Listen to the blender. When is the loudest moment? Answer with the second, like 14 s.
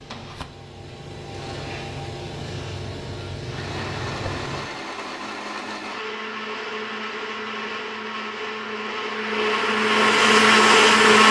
11 s.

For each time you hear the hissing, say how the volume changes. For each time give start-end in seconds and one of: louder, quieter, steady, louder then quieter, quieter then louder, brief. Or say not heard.
0.0-4.7 louder.